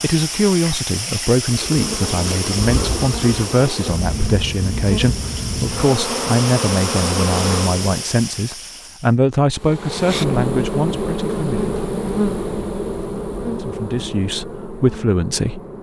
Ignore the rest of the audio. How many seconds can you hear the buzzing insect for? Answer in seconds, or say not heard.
13 s.